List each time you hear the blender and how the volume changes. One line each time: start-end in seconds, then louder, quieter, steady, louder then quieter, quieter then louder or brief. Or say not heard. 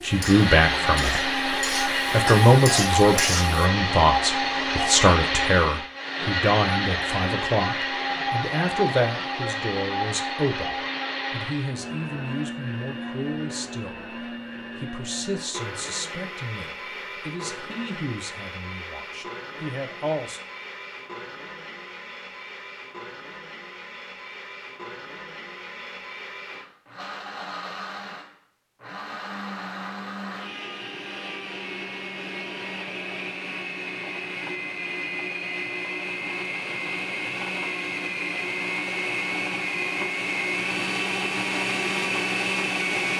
0.0-43.1 quieter then louder.